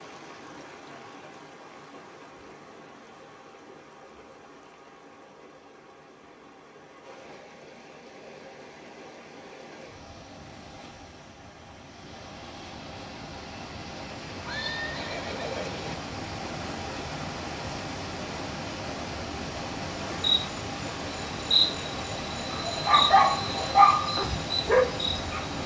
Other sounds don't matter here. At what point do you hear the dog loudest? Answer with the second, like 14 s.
24 s.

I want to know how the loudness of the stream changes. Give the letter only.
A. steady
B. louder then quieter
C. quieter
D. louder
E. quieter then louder
D.